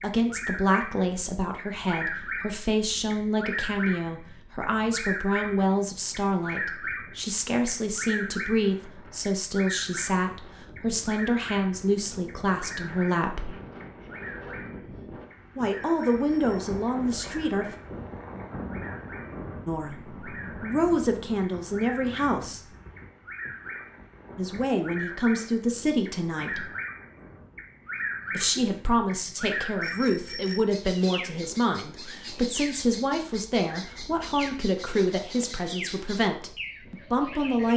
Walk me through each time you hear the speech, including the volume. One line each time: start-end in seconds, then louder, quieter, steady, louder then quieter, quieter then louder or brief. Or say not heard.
0.0-13.5 steady
15.6-17.6 brief
19.6-22.6 brief
24.4-26.6 brief
28.3-37.7 steady.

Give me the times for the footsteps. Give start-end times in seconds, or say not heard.
not heard.